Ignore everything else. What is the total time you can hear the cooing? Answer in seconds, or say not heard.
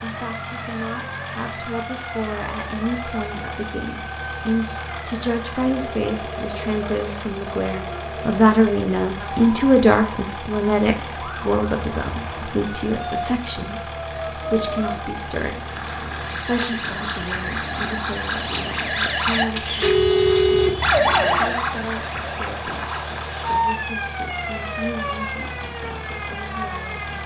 not heard.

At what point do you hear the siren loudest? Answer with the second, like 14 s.
21 s.